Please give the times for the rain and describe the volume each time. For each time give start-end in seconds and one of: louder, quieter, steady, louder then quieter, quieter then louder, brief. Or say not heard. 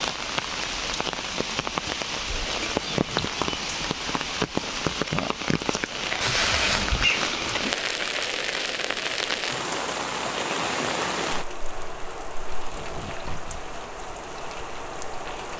0.0-15.5 quieter.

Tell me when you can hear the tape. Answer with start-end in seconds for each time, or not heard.
2.9-3.4, 6.2-7.2, 12.5-13.6.